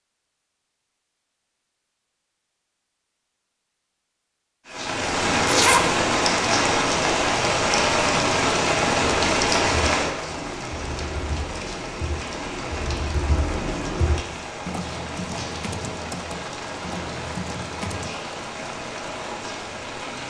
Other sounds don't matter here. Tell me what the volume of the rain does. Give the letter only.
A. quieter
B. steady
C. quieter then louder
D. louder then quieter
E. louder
A.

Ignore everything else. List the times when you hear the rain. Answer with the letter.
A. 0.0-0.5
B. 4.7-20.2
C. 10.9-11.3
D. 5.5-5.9
B.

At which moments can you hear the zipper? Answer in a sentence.
The zipper can be heard from 5.5 to 5.9 s.